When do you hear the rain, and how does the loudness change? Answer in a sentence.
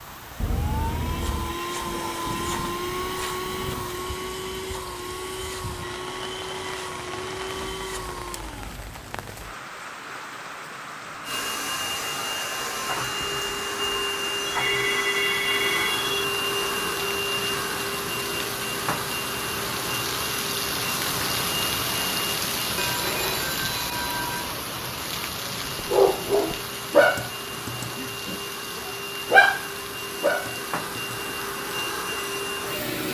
You can hear the rain from 0.0 to 33.0 s, getting louder then quieter.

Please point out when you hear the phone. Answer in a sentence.
You can hear the phone from 0.4 to 1.6 s, from 14.4 to 16.1 s and from 22.8 to 24.4 s.